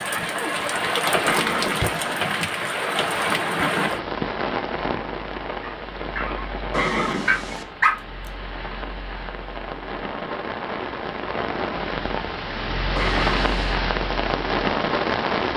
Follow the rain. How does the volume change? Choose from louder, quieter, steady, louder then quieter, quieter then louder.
quieter then louder.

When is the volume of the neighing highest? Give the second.
7 s.